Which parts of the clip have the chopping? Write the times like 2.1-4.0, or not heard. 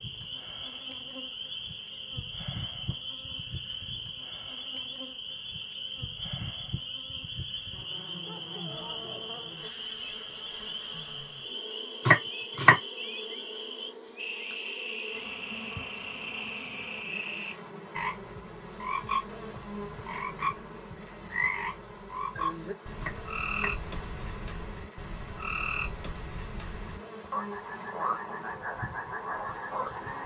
12.1-12.8, 23.0-23.8.